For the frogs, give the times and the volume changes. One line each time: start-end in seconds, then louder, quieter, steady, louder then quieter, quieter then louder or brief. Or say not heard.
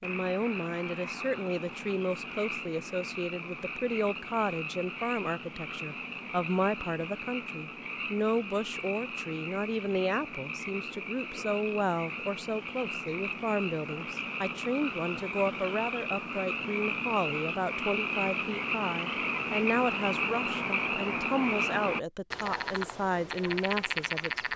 0.0-24.5 louder.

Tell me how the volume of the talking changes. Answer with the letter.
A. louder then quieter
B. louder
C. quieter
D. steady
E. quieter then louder
D.